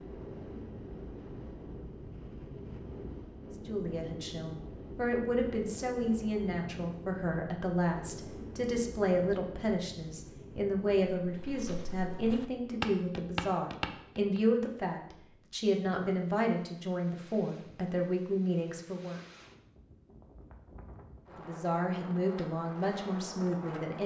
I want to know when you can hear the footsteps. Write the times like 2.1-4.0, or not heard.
11.2-14.4.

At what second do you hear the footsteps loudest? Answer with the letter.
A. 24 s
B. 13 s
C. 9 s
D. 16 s
B.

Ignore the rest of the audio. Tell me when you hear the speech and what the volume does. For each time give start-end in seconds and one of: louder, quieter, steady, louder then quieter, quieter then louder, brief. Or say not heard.
3.6-19.2 steady
21.4-24.0 brief.